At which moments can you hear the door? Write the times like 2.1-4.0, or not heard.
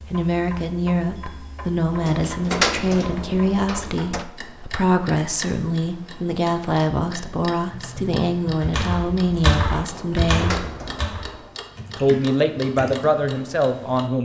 1.9-4.2, 9.8-11.5.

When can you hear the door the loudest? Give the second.
3 s.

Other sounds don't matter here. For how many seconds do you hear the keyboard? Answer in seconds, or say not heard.
6 s.